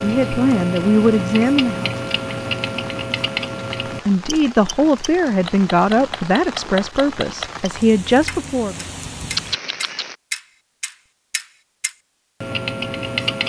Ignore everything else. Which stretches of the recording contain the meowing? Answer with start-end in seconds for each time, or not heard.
9.3-10.1.